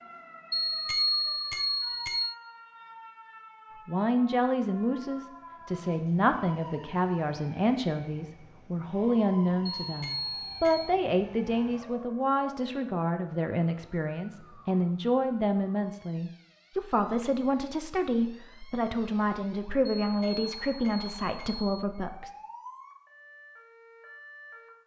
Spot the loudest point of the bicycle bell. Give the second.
1 s.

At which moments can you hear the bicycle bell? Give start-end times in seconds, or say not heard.
0.5-2.4, 9.8-10.9, 20.0-21.6.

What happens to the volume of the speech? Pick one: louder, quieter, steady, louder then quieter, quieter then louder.
steady.